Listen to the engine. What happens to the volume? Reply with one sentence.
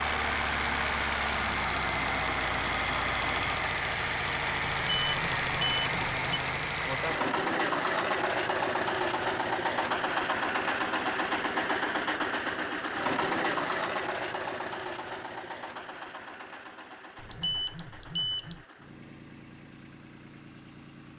The volume of the engine goes down.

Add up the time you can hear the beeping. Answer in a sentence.
You can hear the beeping for 3 seconds altogether.